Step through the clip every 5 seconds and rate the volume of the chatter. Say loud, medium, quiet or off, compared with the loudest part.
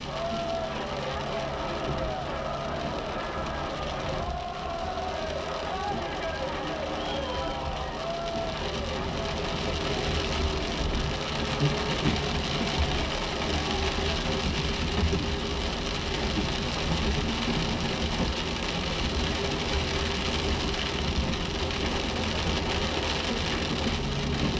loud, loud, medium, off, off.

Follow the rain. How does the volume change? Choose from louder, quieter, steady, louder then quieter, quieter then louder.
louder.